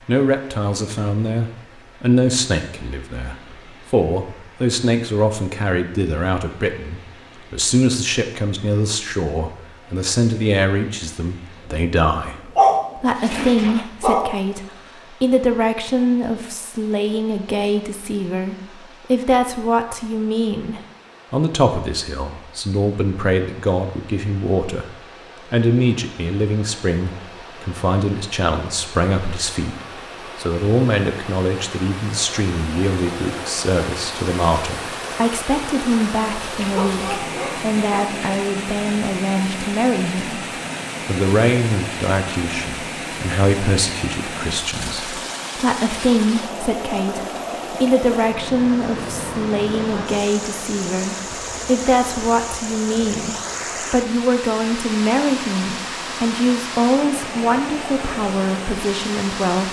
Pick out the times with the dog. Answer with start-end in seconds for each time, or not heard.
12.6-14.3, 36.5-38.3.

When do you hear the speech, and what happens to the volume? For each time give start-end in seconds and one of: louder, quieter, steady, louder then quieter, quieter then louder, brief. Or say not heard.
0.1-59.6 steady.